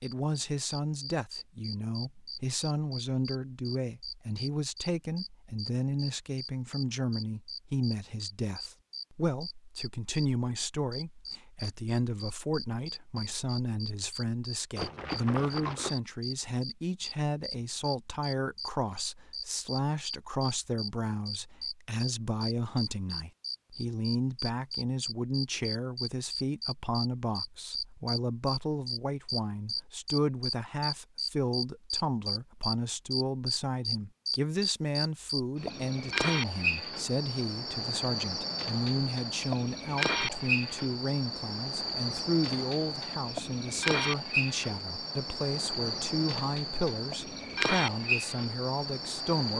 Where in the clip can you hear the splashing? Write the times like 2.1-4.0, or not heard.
14.8-15.9.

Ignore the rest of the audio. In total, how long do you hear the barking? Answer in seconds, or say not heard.
not heard.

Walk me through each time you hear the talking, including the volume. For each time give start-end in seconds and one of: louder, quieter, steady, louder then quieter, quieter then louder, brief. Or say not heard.
0.0-49.5 steady.